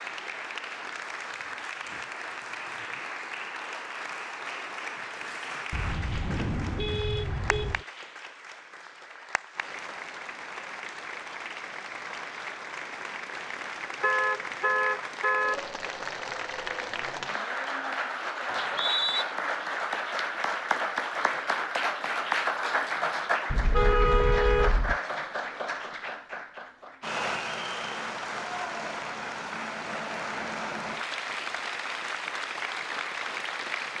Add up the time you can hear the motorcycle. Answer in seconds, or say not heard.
not heard.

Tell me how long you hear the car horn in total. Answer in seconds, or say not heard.
5 s.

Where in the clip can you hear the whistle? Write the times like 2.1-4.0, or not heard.
18.4-19.2.